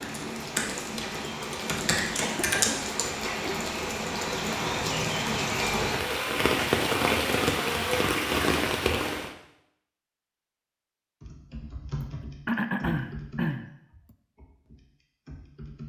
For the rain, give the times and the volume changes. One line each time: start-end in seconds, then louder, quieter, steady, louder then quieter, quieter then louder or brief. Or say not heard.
0.0-9.3 louder.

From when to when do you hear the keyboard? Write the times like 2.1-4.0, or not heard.
0.0-3.0, 11.2-15.8.